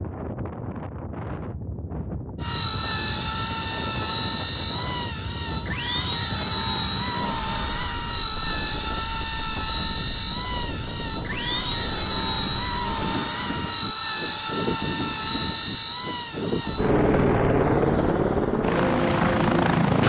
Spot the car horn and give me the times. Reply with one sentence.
You can't hear the car horn here.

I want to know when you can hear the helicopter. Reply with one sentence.
The helicopter can be heard from 2.4 to 20.0 s.